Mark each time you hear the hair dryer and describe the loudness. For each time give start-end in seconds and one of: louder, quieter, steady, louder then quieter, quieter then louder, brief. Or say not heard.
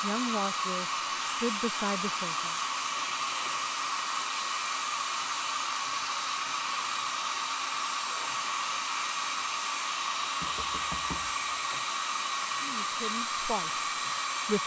0.0-14.6 steady.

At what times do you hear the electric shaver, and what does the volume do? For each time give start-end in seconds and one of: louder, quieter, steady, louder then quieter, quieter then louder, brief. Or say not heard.
not heard.